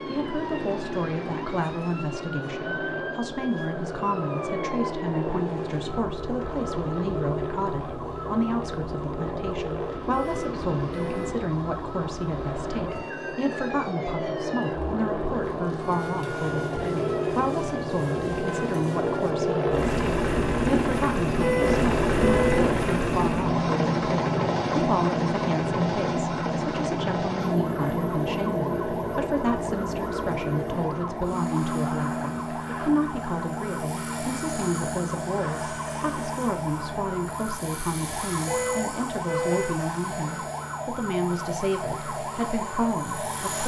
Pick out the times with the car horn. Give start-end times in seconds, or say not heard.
10.1-11.3, 21.4-22.6, 38.2-39.8.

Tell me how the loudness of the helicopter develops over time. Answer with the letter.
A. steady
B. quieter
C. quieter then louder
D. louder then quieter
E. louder
D.